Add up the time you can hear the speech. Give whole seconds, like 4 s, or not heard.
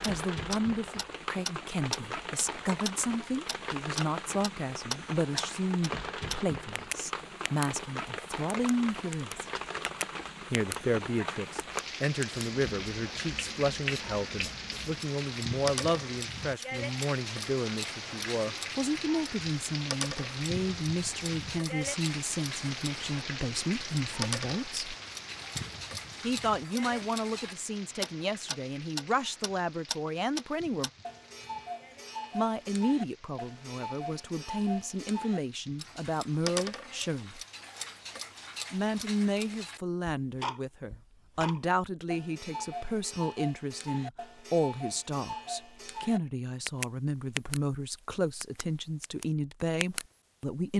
46 s.